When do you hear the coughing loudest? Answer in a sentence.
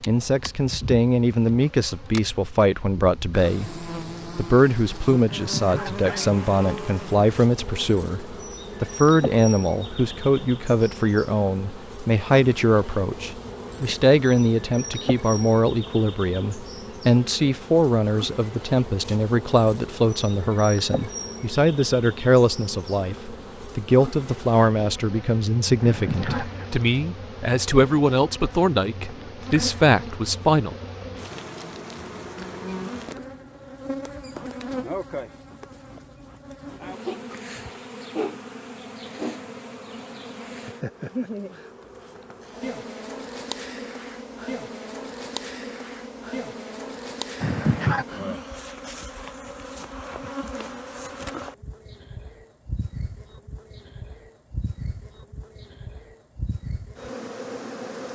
The volume of the coughing peaks at 48 seconds.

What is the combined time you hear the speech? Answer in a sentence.
You can hear the speech for 31 seconds altogether.